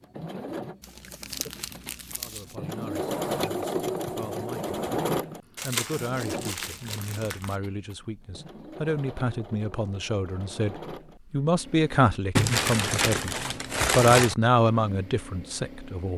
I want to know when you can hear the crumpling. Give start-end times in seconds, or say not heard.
0.8-2.5, 5.5-7.5, 12.3-14.3.